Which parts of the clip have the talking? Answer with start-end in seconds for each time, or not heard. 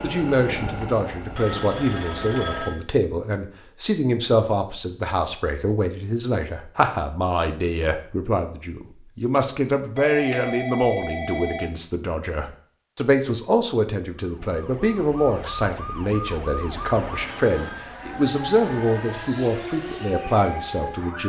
0.0-21.2.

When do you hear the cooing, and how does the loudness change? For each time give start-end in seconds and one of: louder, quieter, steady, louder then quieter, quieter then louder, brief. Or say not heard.
not heard.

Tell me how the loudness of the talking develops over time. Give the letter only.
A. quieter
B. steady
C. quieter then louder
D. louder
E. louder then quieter
B.